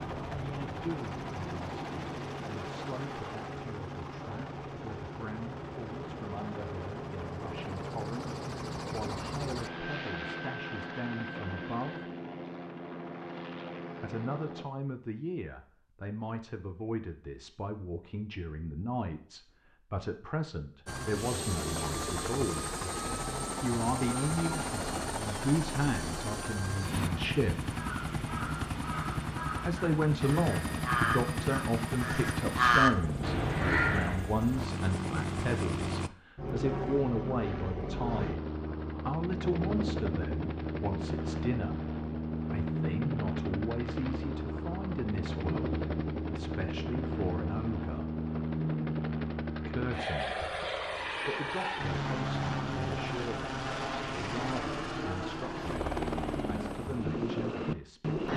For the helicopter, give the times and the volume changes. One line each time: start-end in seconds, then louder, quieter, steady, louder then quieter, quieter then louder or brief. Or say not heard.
0.0-14.7 steady
20.9-58.3 steady.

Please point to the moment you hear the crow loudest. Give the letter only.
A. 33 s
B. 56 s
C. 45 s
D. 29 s
A.